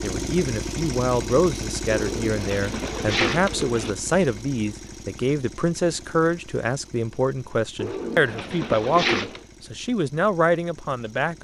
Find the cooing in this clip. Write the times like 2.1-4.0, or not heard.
1.9-3.9, 7.8-9.4.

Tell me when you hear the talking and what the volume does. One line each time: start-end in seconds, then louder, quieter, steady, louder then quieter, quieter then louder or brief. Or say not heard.
0.0-11.3 steady.